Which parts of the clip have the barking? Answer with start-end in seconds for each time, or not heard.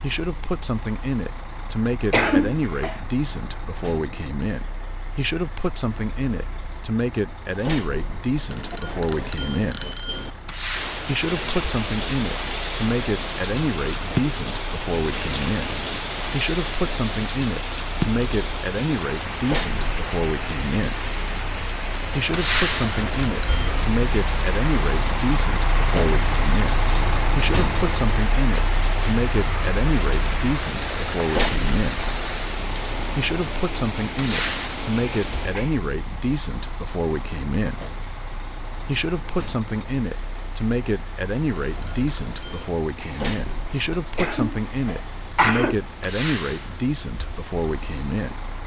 not heard.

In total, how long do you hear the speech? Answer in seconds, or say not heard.
44 s.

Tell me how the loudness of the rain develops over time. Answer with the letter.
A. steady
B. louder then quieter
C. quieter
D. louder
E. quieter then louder
C.